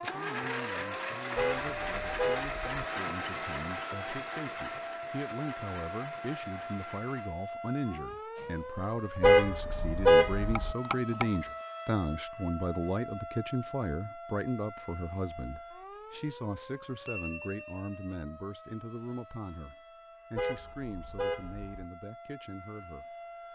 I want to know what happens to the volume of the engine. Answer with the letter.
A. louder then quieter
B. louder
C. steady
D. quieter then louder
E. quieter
E.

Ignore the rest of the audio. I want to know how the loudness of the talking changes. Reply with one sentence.
The volume of the talking goes up, then down.